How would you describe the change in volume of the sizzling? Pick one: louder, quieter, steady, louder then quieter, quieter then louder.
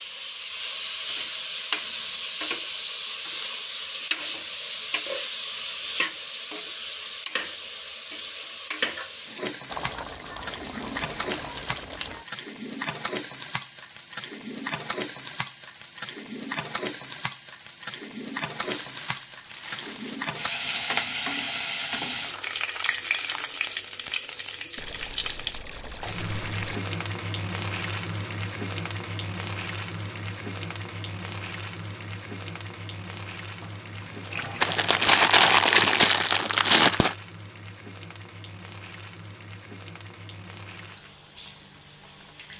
quieter.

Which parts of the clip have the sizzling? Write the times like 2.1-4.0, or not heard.
0.0-42.5.